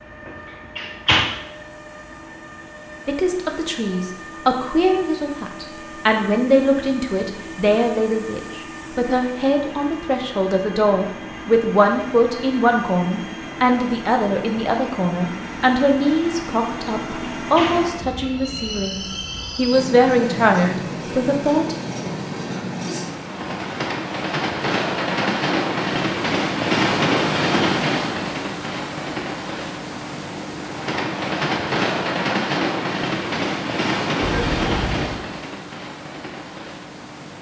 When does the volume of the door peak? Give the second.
1 s.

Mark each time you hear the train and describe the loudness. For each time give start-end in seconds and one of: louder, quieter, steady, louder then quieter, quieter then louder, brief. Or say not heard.
0.0-37.3 louder.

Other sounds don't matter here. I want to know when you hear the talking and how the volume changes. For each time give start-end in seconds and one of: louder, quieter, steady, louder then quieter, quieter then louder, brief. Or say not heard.
3.0-21.8 steady.